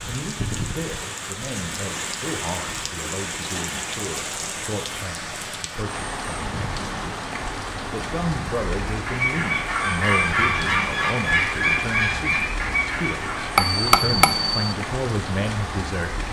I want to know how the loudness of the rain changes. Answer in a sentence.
The loudness of the rain stays about the same.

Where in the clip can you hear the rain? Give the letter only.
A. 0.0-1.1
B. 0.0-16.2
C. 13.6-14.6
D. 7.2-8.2
B.